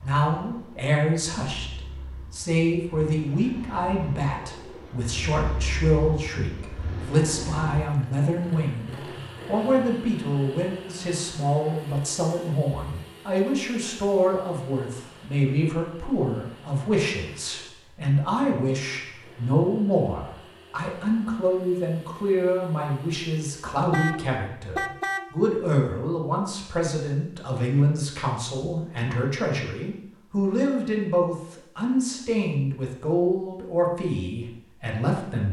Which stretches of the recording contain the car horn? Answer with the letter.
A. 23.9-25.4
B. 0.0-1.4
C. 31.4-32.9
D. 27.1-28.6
A.